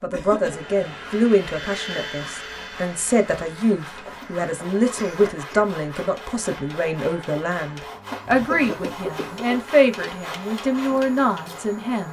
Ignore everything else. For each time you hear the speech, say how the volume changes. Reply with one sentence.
You can hear the speech from 0.0 to 12.0 s, at a steady volume.